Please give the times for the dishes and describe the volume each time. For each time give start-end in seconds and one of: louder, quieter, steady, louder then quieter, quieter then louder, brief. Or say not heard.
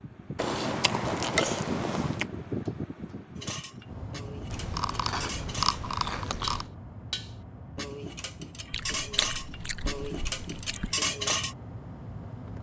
3.4-11.6 louder.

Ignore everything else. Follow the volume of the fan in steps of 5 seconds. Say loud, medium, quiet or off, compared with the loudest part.
loud, medium, medium.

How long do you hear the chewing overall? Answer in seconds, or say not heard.
6 s.